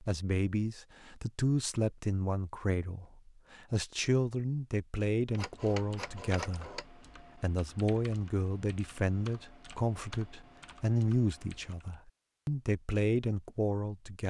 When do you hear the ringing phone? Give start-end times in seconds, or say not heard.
5.2-6.8.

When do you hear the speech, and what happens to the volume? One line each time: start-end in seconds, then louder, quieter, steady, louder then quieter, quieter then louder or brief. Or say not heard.
0.0-14.2 steady.